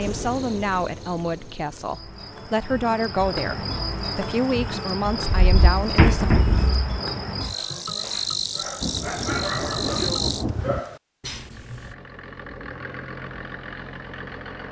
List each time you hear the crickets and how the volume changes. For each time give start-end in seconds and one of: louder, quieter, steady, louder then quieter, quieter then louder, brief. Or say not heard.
0.0-10.4 louder.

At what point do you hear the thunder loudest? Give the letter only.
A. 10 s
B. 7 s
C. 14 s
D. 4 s
A.